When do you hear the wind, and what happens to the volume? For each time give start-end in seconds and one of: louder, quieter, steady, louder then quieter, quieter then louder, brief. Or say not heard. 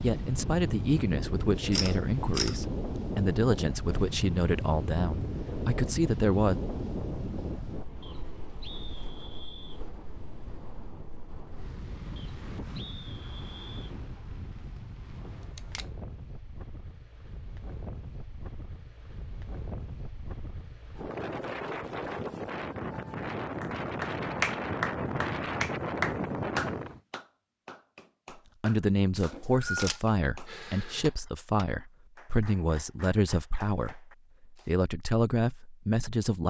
0.0-27.0 quieter then louder.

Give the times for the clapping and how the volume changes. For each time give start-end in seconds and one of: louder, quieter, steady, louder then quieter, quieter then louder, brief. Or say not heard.
23.6-34.8 quieter.